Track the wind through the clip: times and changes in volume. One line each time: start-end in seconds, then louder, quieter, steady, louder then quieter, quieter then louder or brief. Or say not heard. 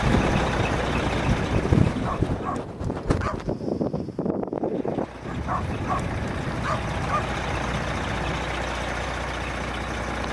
0.0-8.4 quieter.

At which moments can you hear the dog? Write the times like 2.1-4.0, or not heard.
1.9-3.4, 5.2-7.2.